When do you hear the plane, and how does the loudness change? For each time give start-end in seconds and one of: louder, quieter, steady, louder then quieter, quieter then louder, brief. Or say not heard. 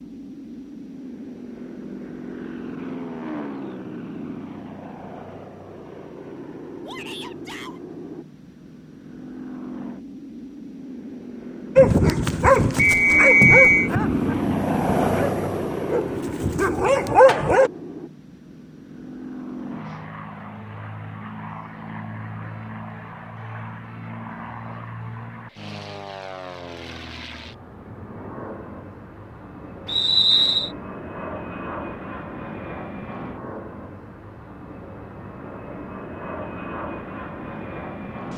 0.0-38.3 louder then quieter.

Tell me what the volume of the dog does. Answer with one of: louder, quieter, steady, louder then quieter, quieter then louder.
quieter then louder.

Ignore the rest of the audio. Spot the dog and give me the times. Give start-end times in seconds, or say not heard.
11.8-17.7.